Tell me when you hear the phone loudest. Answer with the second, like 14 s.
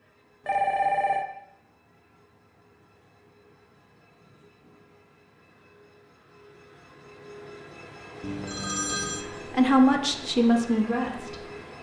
1 s.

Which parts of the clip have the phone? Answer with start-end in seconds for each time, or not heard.
0.5-1.2, 8.2-9.2.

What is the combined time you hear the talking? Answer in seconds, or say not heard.
2 s.